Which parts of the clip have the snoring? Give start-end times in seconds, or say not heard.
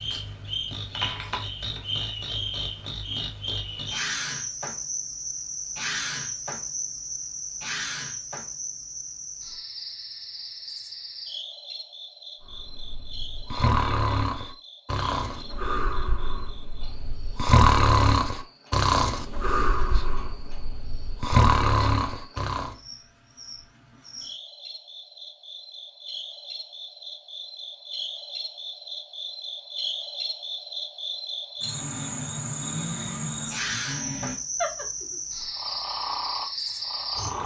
12.4-22.8, 31.6-37.4.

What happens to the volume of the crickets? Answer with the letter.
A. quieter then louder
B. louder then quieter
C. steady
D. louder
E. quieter
A.